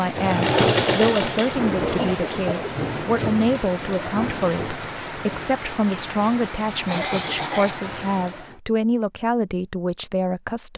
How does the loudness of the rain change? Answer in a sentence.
The loudness of the rain goes down.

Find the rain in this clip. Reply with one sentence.
The rain can be heard from 0.0 to 8.6 s.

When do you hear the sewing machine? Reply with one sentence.
You can hear the sewing machine from 0.0 to 2.4 s.